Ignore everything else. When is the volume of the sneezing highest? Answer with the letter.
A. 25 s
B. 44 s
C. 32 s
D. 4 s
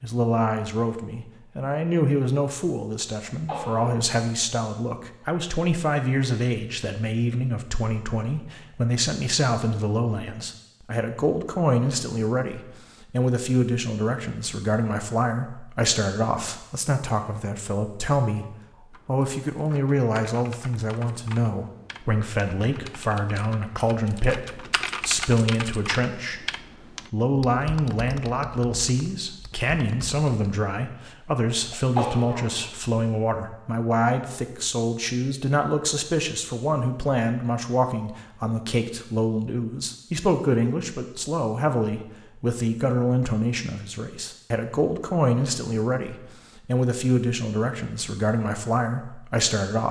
C.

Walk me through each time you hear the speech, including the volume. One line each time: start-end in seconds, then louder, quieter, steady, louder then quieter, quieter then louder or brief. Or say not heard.
0.0-26.5 steady
27.1-49.8 steady.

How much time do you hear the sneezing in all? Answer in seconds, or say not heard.
2 s.